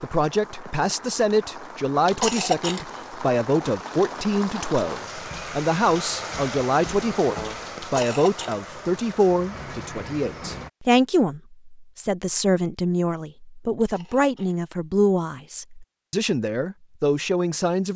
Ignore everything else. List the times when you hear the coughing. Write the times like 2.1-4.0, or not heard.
2.0-2.9, 7.8-8.8, 13.8-14.6.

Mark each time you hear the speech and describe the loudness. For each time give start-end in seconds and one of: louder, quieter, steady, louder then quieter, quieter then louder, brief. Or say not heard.
0.0-17.9 steady.